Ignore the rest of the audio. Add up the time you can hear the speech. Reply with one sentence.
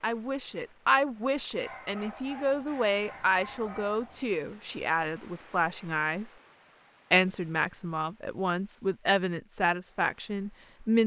The speech can be heard for 10 seconds in total.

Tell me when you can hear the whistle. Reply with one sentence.
The whistle can't be heard in this clip.